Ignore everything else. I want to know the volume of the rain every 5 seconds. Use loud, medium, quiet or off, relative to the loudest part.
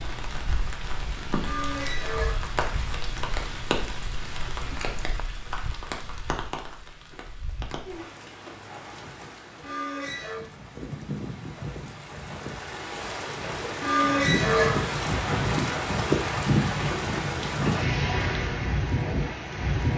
medium, quiet, medium, loud.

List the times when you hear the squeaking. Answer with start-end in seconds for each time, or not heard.
1.4-2.4, 9.6-10.4, 13.8-14.8.